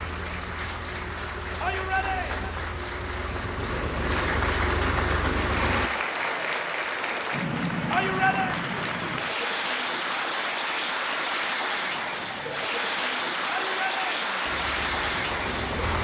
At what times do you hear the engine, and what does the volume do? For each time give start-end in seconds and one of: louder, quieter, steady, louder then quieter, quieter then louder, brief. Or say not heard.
0.0-5.9 louder
14.4-16.0 brief.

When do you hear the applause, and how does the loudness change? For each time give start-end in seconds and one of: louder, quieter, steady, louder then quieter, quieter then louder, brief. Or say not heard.
0.0-16.0 louder.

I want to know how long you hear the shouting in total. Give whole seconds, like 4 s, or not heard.
3 s.